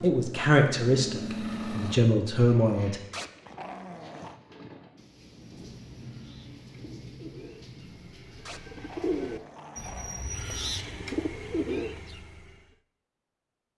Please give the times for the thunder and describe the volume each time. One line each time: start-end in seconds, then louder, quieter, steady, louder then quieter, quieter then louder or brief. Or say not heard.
5.0-9.4 quieter.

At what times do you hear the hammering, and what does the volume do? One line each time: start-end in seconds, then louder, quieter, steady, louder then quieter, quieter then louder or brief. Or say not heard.
not heard.